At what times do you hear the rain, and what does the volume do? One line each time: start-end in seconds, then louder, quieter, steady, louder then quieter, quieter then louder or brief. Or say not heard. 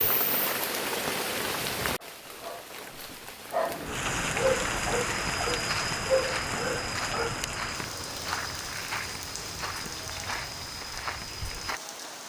0.0-12.2 quieter.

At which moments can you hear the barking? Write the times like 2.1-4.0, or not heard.
2.0-7.5.